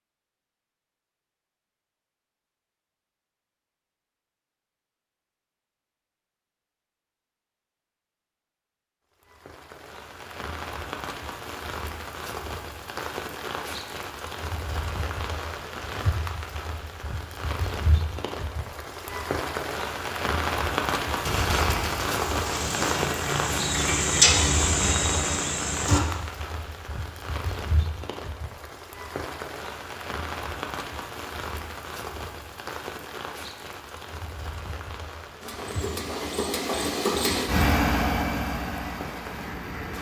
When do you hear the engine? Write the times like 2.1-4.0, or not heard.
21.2-26.0, 35.4-39.9.